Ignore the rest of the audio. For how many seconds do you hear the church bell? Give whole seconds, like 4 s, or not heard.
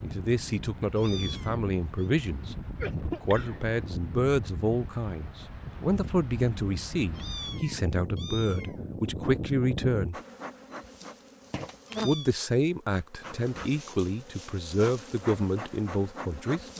not heard.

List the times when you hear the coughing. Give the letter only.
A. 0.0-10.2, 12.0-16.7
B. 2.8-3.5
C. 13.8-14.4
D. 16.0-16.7
B.